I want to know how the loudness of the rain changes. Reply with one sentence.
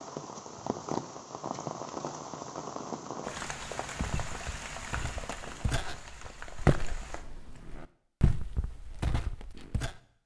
The volume of the rain goes down.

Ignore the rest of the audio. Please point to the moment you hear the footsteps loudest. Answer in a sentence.
The volume of the footsteps peaks at 7 seconds.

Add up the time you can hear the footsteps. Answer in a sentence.
You can hear the footsteps for 6 seconds altogether.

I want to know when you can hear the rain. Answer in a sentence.
You can hear the rain from 0.0 to 7.8 s.